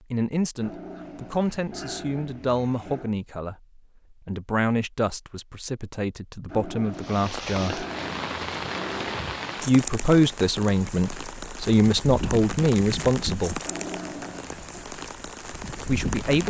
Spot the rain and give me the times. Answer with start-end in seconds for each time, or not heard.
7.0-16.4.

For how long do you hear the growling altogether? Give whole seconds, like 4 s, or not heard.
7 s.